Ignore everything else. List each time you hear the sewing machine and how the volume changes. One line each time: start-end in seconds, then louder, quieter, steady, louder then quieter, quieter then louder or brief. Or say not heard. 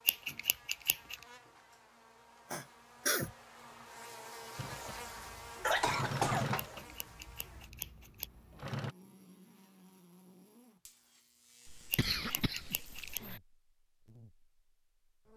4.5-8.9 louder then quieter.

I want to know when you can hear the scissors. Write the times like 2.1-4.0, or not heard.
0.1-1.1, 6.5-8.3, 11.9-13.2.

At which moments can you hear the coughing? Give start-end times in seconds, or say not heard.
2.5-3.3, 5.6-6.5, 11.7-13.4.